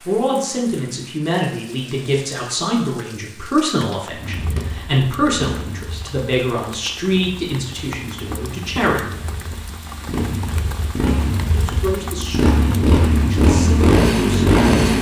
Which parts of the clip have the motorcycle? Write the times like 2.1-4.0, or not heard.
4.1-14.9.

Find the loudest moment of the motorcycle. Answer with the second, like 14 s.
14 s.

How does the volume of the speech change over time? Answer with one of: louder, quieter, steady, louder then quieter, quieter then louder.
quieter.